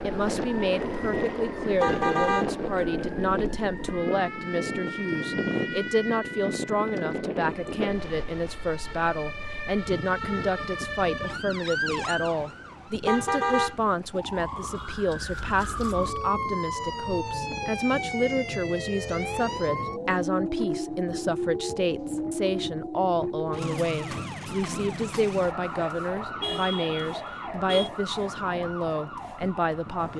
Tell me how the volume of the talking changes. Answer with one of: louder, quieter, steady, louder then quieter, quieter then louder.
steady.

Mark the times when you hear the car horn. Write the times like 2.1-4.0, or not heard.
1.8-2.5, 13.1-13.8, 26.4-27.9.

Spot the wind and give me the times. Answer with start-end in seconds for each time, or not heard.
0.0-30.1.